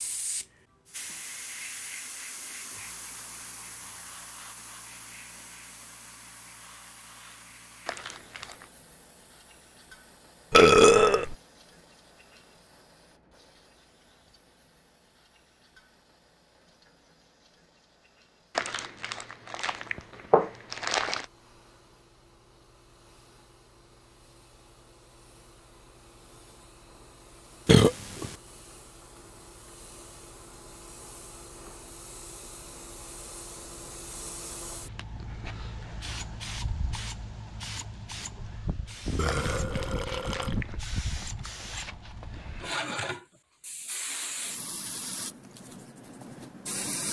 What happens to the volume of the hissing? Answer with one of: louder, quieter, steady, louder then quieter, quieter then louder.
quieter then louder.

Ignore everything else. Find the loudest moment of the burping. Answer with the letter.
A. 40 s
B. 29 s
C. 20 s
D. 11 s
D.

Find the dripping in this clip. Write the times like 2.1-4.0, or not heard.
not heard.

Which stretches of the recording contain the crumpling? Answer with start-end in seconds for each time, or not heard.
7.8-8.7, 18.6-21.2, 39.2-40.8.